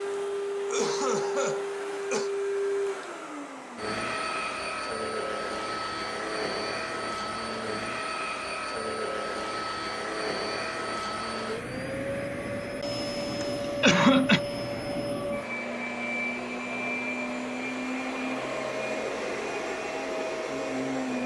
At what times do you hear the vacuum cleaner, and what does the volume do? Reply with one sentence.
You can hear the vacuum cleaner from 0.0 to 21.2 s, at a steady volume.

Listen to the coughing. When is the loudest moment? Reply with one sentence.
The volume of the coughing peaks at 14 seconds.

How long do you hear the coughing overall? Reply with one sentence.
You can hear the coughing for 3 seconds altogether.